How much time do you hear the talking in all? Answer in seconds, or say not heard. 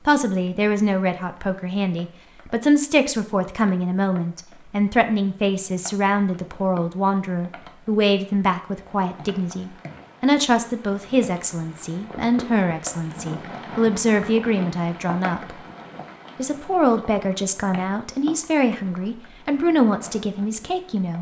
20 s.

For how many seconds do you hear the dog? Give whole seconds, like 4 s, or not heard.
not heard.